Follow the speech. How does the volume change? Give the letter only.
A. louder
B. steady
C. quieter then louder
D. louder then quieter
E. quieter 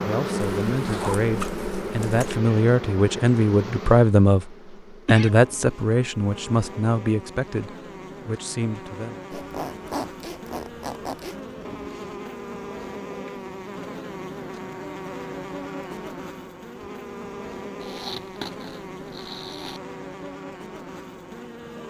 D.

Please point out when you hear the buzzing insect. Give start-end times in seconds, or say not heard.
0.0-21.8.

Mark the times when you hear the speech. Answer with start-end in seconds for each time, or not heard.
0.0-4.5, 5.0-9.2.